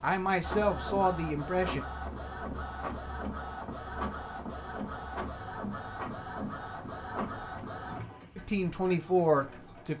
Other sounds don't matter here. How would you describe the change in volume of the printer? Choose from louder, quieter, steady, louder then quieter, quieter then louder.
quieter.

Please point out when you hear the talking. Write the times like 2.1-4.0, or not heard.
0.0-1.9, 8.3-9.9.